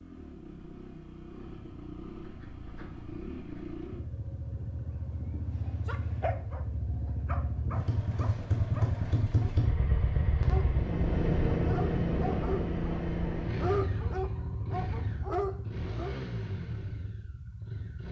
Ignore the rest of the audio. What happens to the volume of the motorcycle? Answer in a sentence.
The loudness of the motorcycle goes up, then down.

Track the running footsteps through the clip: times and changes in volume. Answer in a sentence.
The running footsteps can't be heard in this clip.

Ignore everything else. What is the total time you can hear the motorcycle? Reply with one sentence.
You can hear the motorcycle for 18 seconds altogether.